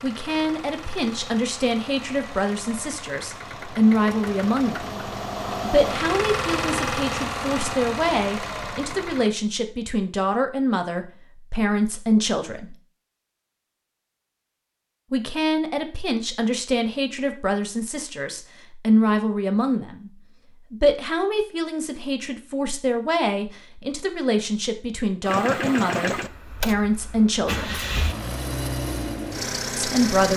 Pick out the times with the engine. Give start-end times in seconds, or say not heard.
0.0-9.3, 25.2-30.3.